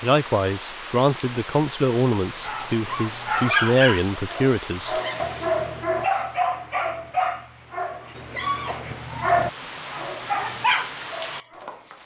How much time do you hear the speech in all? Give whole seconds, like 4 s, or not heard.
5 s.